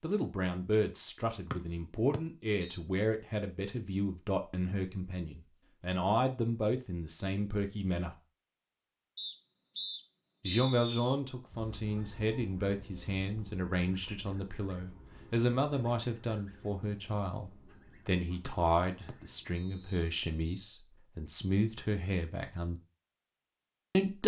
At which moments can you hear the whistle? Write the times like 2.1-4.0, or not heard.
1.5-2.8, 9.2-11.2, 18.4-20.6.